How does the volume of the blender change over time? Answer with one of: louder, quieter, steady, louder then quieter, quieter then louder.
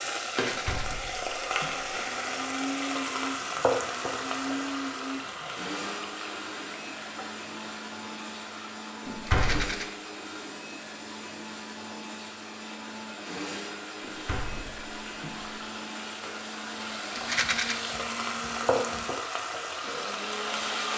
steady.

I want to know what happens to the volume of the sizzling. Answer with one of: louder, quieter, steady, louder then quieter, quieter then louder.
quieter then louder.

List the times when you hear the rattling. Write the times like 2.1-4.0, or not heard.
0.2-0.8, 9.2-9.8, 17.1-17.8.